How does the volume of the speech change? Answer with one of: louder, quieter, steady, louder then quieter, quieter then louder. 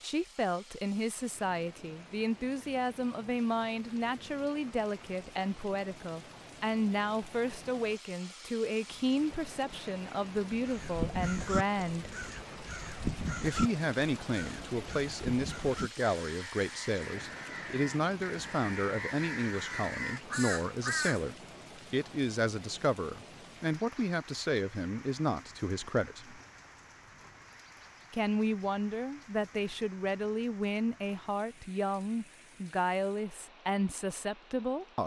steady.